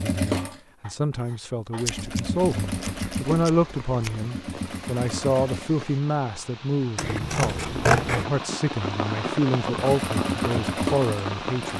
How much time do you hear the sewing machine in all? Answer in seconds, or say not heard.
8 s.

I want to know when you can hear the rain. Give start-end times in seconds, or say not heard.
2.3-11.7.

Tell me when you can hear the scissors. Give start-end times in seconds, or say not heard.
1.9-4.2, 7.0-8.2.